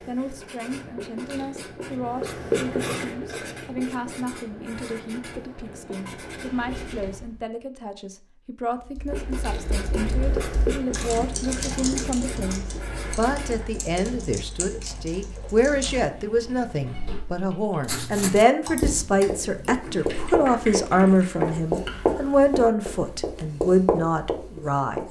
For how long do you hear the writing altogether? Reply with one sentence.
The writing can be heard for 19 seconds in total.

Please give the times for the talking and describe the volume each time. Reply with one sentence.
You can hear the talking from 0.1 to 25.0 s, getting louder.